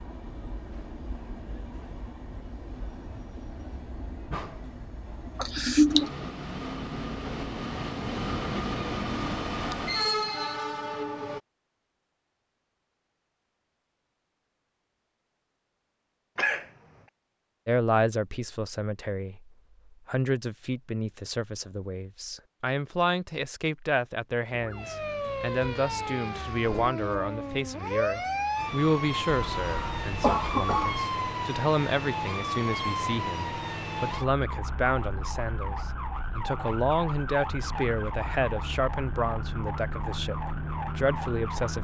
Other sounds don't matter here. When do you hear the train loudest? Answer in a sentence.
The volume of the train peaks at 10 seconds.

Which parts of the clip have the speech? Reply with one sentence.
The speech can be heard from 17.6 to 41.7 s.